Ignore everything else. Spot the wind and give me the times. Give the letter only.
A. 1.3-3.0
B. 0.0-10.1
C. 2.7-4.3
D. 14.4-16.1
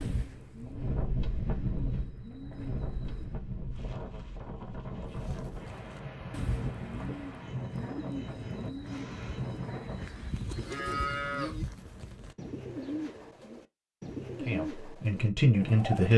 B.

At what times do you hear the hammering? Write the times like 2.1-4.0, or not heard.
not heard.